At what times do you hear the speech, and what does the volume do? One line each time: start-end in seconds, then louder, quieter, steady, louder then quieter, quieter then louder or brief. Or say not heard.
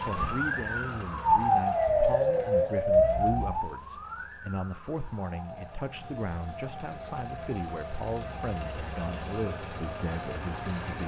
0.0-11.0 steady.